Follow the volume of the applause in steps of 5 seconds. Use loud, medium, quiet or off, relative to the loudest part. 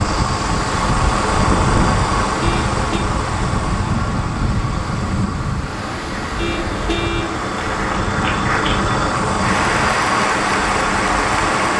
off, loud, loud.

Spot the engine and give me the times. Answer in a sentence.
The engine can be heard from 0.0 to 11.7 s.